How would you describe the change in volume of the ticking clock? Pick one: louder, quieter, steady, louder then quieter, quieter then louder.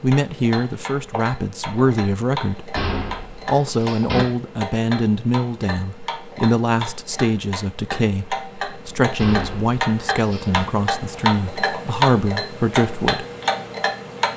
louder.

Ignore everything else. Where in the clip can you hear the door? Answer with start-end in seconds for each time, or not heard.
2.8-4.2, 9.2-10.7.